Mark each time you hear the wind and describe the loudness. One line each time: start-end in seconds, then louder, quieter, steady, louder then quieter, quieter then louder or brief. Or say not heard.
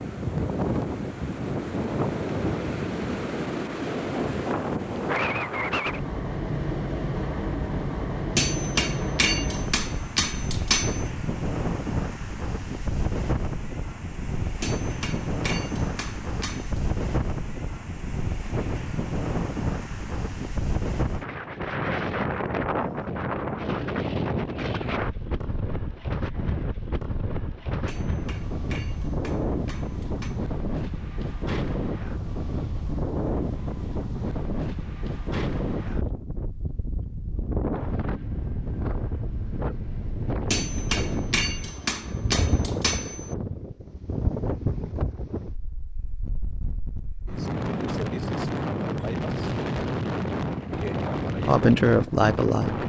0.0-52.8 steady.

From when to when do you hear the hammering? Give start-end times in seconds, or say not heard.
8.3-11.1, 14.6-16.8, 27.9-30.4, 40.5-43.4.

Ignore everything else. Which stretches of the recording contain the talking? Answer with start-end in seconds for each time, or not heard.
51.4-52.8.